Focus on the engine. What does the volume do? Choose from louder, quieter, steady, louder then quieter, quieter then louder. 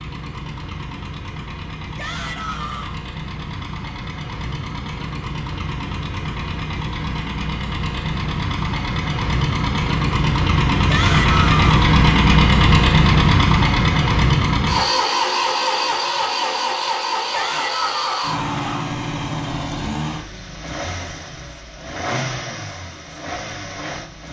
louder then quieter.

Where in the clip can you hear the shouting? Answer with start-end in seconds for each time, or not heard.
1.9-3.0, 10.8-11.9, 17.3-18.9.